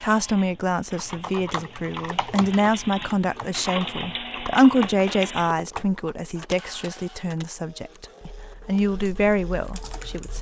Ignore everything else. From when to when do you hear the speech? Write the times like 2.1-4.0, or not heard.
0.0-10.3.